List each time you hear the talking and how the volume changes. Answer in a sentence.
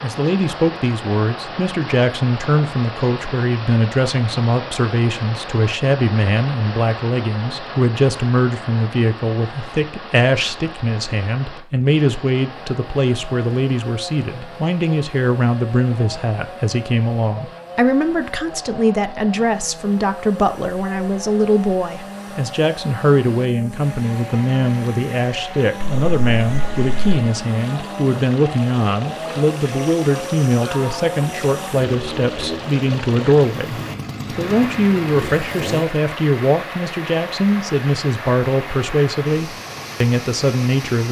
The talking can be heard from 0.0 to 41.0 s, at a steady volume.